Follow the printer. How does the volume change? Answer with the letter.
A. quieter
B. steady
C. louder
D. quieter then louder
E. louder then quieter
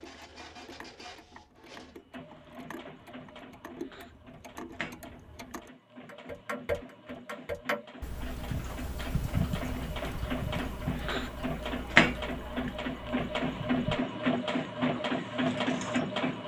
C.